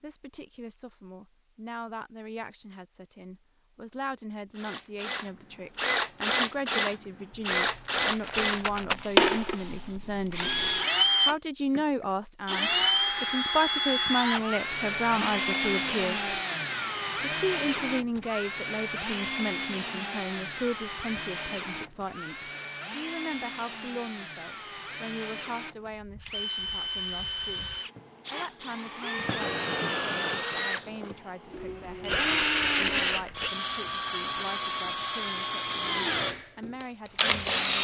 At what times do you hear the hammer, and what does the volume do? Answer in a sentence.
The hammer can't be heard in this clip.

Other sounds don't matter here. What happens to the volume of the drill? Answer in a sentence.
The volume of the drill goes down, then up.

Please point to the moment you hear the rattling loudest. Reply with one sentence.
The volume of the rattling peaks at 9 seconds.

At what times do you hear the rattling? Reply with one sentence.
The rattling can be heard from 7.3 to 9.1 s.